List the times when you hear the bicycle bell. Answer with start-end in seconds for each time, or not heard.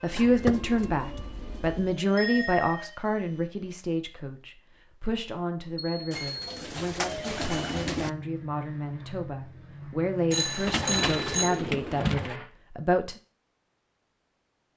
2.1-2.9, 6.0-6.5, 10.3-11.5.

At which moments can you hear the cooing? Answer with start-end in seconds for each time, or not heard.
0.1-2.0, 6.1-8.1, 10.7-12.4.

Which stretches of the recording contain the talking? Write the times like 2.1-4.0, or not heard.
0.0-13.2.